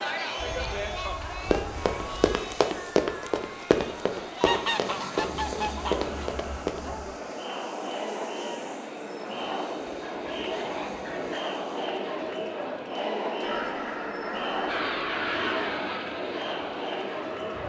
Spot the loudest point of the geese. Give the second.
5 s.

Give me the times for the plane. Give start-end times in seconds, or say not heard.
0.0-12.9, 14.7-17.6.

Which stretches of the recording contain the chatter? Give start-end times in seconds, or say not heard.
0.0-17.6.